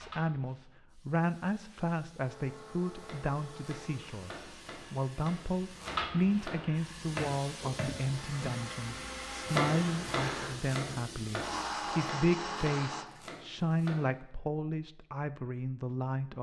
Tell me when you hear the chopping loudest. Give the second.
10 s.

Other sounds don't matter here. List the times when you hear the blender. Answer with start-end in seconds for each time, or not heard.
2.2-13.1.